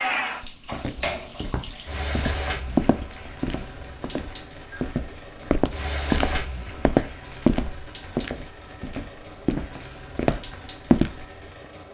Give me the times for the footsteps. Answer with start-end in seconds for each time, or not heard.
0.4-11.2.